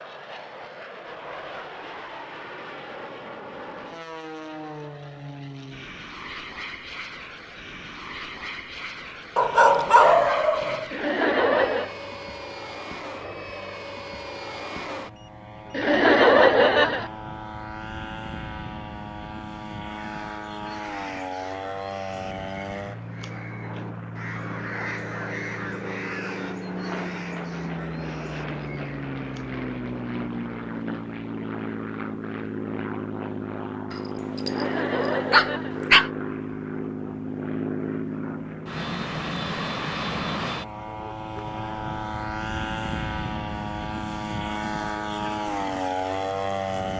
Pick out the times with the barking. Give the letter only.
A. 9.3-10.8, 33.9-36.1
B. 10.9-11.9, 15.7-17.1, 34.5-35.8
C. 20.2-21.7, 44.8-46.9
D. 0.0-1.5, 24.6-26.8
A.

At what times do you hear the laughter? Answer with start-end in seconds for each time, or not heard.
10.9-11.9, 15.7-17.1, 34.5-35.8.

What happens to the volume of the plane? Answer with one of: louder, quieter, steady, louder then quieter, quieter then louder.
louder.